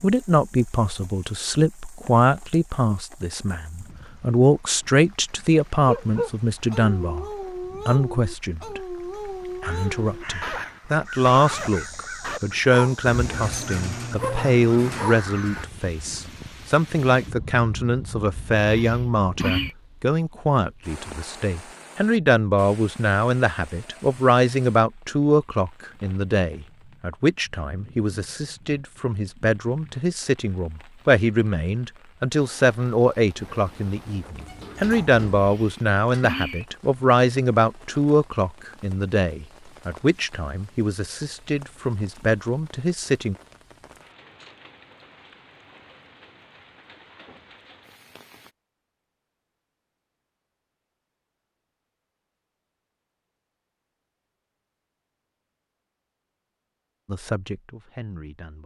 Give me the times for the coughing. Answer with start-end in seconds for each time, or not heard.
18.6-19.8, 35.4-36.6.